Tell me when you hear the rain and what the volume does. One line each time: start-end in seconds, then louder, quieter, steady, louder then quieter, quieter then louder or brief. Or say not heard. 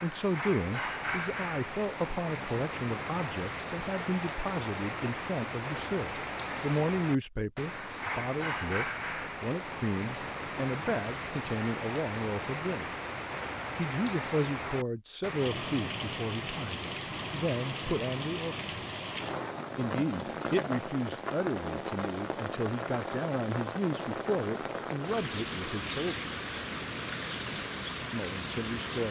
0.0-29.0 steady.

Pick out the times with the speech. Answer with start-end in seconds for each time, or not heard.
0.0-12.9, 13.8-18.6, 19.8-26.3, 28.1-29.0.